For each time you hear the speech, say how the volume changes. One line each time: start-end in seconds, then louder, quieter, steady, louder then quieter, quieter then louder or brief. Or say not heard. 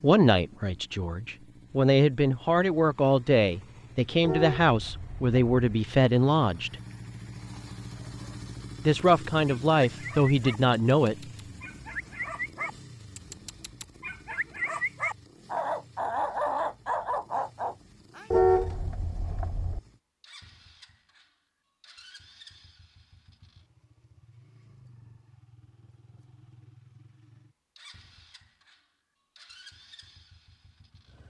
0.0-6.8 louder
8.8-11.2 brief.